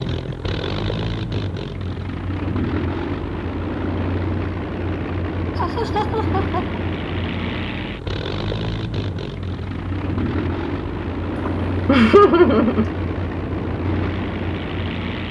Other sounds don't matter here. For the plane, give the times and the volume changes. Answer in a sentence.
You can hear the plane from 0.0 to 15.2 s, at a steady volume.